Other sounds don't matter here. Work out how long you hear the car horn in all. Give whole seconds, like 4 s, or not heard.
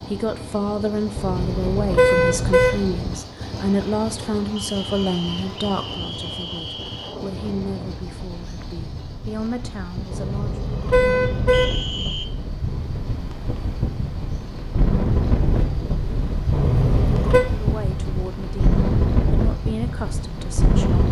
5 s.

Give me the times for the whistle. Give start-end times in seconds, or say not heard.
4.5-7.2, 11.5-12.3.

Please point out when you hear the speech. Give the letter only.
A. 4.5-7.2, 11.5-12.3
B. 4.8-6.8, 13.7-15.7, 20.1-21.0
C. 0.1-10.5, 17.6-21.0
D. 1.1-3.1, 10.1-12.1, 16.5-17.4
C.